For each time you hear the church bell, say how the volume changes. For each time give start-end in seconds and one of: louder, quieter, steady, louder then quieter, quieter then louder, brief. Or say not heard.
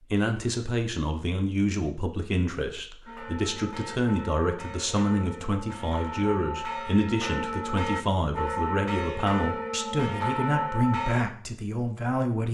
3.0-11.2 louder.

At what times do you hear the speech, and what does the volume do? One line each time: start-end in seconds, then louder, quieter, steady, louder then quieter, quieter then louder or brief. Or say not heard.
0.1-12.5 steady.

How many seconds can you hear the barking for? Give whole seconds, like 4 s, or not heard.
not heard.